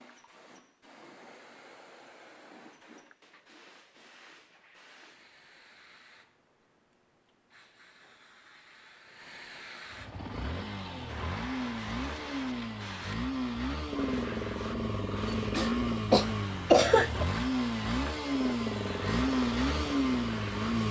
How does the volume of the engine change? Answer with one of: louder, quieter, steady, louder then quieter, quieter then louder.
louder.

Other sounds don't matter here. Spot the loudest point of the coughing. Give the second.
17 s.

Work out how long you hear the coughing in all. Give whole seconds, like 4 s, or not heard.
2 s.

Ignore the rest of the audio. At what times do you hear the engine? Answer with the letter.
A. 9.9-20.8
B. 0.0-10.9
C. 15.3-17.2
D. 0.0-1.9
A.